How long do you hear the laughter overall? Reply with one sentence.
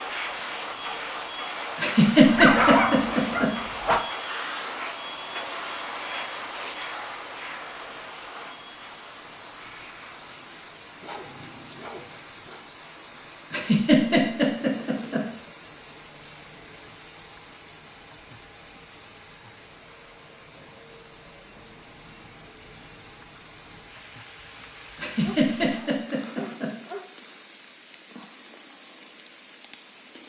You can hear the laughter for 5 seconds altogether.